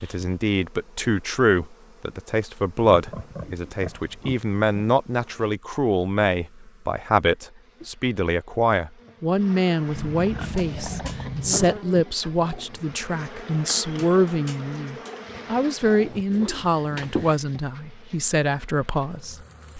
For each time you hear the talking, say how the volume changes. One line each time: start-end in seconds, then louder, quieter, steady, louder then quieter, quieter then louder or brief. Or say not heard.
0.0-19.7 steady.